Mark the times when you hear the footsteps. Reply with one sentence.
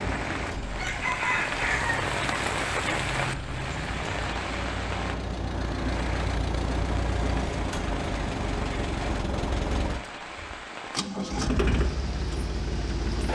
The footsteps can't be heard in this clip.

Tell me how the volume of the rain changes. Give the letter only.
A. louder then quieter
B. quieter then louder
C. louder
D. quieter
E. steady
D.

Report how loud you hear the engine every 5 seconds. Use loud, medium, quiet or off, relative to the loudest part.
medium, loud, loud.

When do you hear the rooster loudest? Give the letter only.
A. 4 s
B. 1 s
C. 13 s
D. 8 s
B.